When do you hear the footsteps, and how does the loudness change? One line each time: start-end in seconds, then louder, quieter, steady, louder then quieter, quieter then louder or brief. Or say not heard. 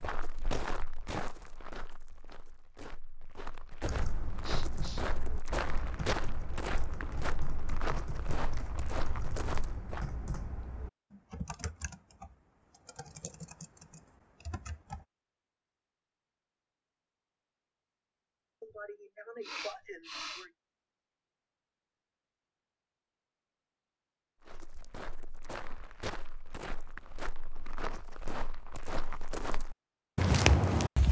0.0-10.1 quieter then louder
24.4-31.0 louder.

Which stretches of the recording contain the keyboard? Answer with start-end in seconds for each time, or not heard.
3.8-15.1.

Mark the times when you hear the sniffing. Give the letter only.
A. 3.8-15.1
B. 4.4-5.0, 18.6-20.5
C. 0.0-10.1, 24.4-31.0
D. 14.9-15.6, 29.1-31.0
B.